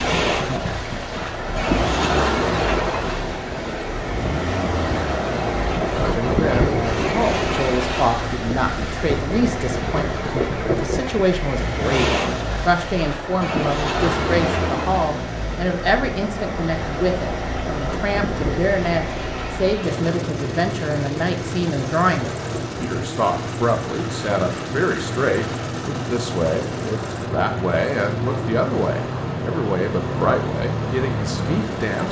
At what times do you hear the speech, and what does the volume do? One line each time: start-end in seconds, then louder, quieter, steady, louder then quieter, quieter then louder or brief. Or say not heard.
6.1-32.0 steady.